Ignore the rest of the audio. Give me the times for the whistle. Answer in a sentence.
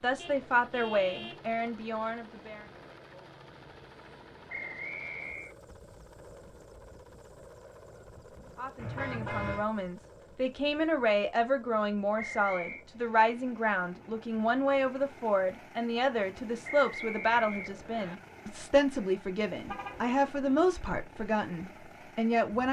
The whistle can be heard from 4.5 to 5.5 s, from 12.2 to 12.8 s and from 16.6 to 18.1 s.